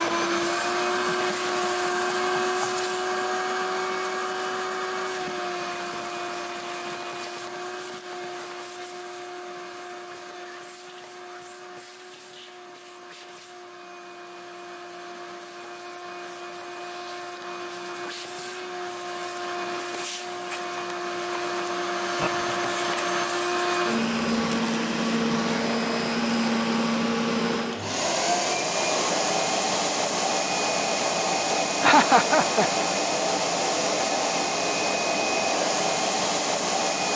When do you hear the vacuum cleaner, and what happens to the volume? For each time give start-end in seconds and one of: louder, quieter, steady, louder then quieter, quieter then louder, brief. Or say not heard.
0.0-37.1 quieter then louder.